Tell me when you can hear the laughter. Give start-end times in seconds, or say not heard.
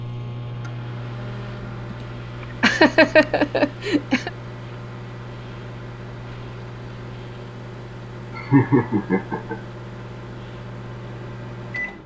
1.9-4.3, 8.3-9.6.